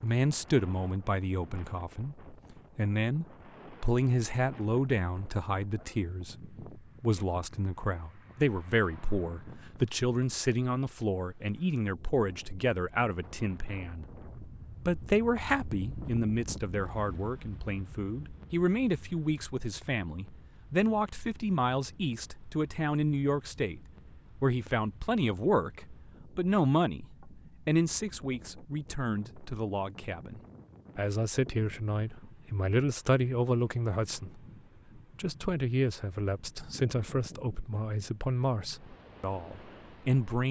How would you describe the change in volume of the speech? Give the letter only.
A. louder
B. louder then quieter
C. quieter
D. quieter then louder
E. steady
E.